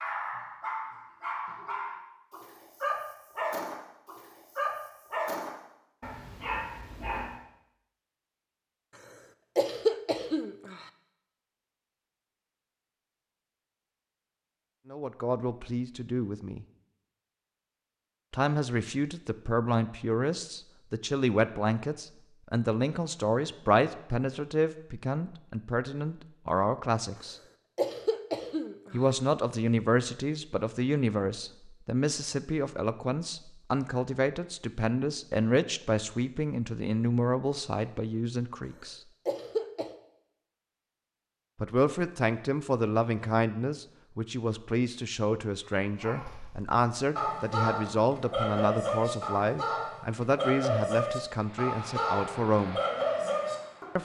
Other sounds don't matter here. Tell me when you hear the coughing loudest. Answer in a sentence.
The loudest moment of the coughing is at 10 seconds.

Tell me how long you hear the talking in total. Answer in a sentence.
You can hear the talking for 32 seconds altogether.